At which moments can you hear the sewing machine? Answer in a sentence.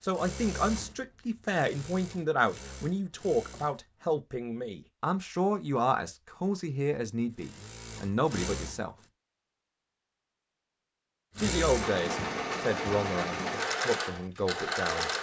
The sewing machine can be heard from 0.0 to 3.9 s, from 7.2 to 9.1 s and from 11.3 to 15.1 s.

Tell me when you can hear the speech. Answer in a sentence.
The speech can be heard from 0.0 to 8.9 s and from 11.3 to 15.1 s.